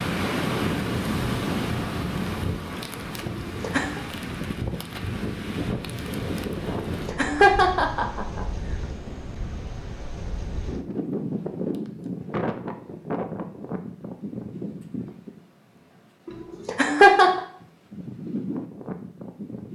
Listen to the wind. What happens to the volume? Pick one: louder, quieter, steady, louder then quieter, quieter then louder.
quieter.